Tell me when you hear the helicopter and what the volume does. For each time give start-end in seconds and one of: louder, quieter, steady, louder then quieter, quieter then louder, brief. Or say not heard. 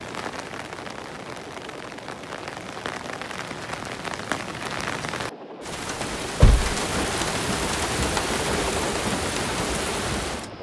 0.0-10.5 louder.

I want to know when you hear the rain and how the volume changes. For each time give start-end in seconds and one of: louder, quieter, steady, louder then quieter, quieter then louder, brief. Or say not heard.
0.0-10.5 louder.